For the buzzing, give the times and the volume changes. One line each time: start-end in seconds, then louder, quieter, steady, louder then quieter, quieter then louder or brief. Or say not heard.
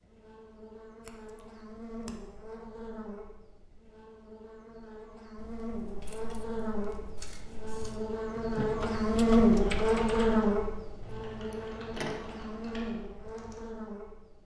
0.0-14.4 louder then quieter.